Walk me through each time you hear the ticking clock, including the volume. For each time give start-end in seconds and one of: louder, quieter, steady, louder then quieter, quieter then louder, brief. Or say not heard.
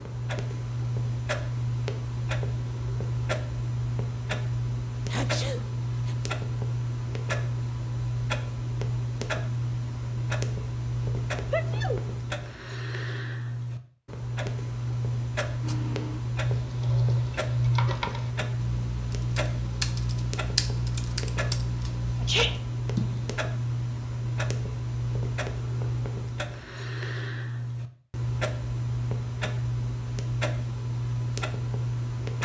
0.0-32.3 steady.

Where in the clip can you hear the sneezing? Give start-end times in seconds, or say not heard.
5.1-6.2, 11.5-12.0, 22.2-22.6.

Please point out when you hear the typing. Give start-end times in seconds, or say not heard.
15.6-23.3.